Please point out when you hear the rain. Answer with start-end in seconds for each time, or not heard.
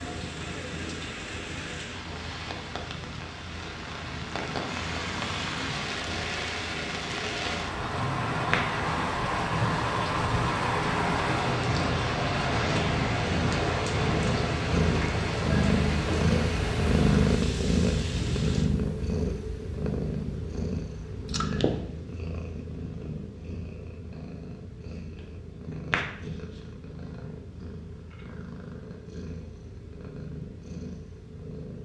0.0-18.7.